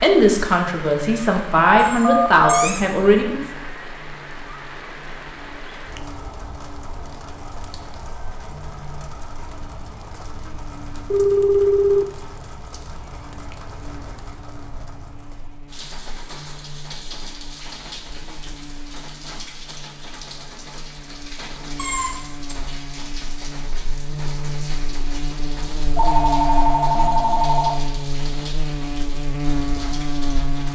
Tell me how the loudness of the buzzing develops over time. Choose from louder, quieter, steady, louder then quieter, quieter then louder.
louder.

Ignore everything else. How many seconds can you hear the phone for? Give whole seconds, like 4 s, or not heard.
4 s.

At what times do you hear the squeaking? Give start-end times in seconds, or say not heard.
1.8-2.9, 21.8-22.6.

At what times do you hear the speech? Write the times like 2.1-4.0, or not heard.
0.0-3.5.